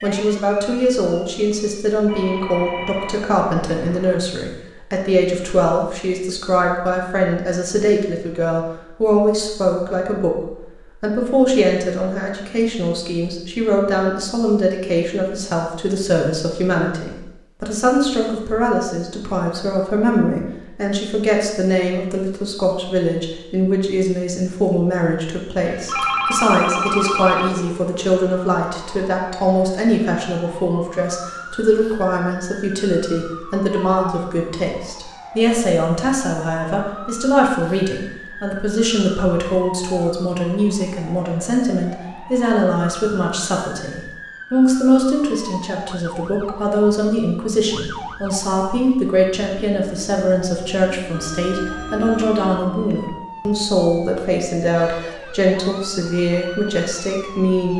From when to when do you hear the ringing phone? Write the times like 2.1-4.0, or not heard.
2.0-4.2, 25.9-27.5, 51.1-53.1.